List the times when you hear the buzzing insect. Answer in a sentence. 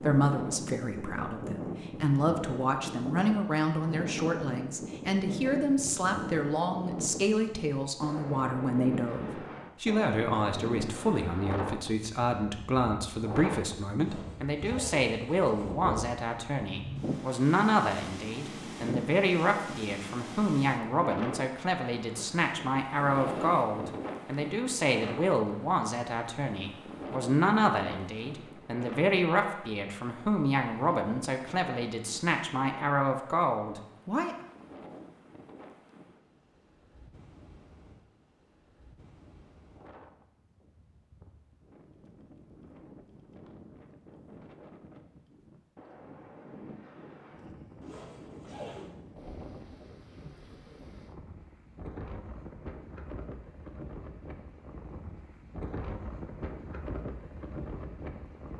You can't hear the buzzing insect here.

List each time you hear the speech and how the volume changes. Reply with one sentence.
You can hear the speech from 0.0 to 34.4 s, at a steady volume.